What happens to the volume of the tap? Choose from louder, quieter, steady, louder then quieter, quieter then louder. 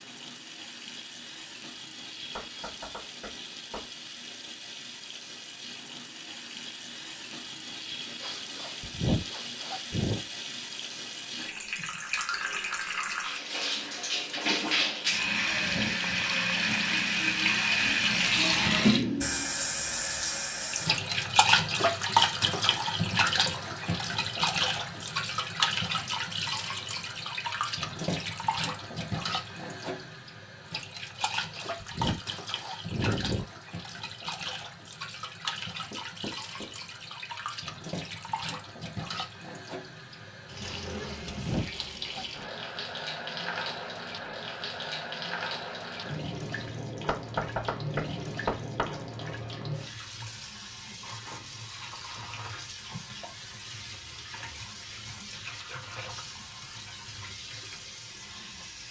louder then quieter.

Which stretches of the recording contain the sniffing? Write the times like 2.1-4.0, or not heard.
8.2-10.2, 31.1-33.5, 40.6-42.2.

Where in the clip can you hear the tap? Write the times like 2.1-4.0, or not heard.
0.0-58.8.